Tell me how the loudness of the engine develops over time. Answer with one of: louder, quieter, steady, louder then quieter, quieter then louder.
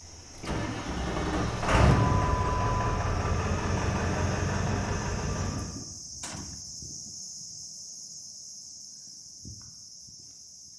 louder then quieter.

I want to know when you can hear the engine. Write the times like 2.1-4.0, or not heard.
0.1-5.7.